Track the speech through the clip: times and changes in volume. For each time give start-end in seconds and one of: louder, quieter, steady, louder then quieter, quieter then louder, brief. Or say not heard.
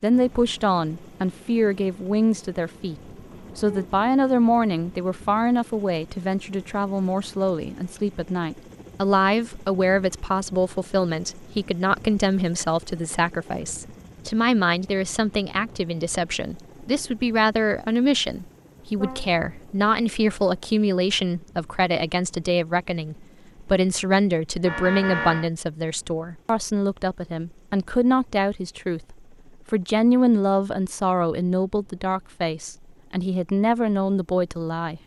0.0-3.0 brief
3.5-35.0 steady.